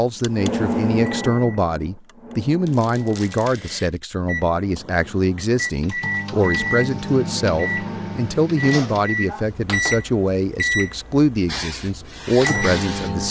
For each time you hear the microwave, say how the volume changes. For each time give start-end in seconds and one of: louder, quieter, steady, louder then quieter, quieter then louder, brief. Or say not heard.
0.2-13.2 quieter then louder.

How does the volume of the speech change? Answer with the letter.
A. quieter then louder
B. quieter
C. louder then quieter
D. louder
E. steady
E.